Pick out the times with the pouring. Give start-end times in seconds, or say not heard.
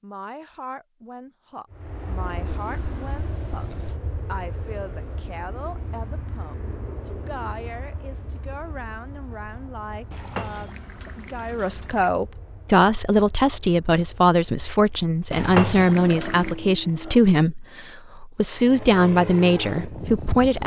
2.5-4.0, 10.1-12.1, 15.3-16.6.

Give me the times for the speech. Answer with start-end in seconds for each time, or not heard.
0.0-20.6.